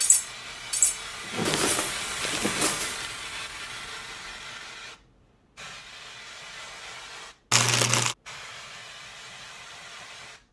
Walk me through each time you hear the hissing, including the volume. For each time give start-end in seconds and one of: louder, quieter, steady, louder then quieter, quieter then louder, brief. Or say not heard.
0.0-10.4 quieter.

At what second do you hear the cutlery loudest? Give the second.
1 s.